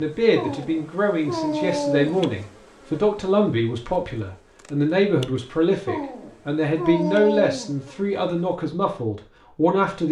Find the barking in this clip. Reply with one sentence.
You can hear the barking from 0.3 to 2.4 s and from 5.8 to 7.8 s.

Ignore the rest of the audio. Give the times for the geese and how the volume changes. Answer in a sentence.
You can't hear the geese here.